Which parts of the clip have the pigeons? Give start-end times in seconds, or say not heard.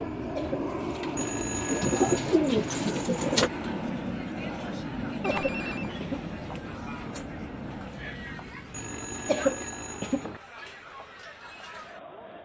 0.0-3.5.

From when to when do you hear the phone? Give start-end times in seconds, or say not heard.
1.1-2.3, 5.2-6.0, 8.7-10.4.